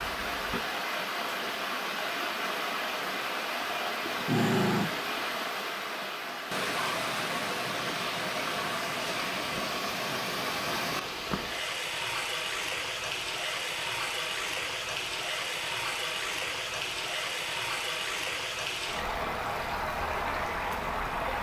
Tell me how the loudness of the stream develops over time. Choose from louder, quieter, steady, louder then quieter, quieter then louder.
steady.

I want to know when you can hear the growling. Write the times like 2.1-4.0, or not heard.
4.0-5.1.